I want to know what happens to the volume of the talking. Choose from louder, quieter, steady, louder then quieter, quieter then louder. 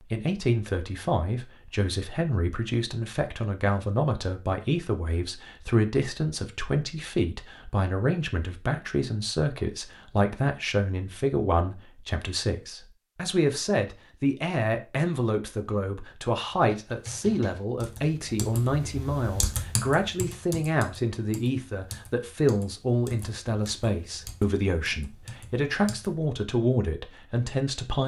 steady.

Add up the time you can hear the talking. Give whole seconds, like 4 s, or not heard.
28 s.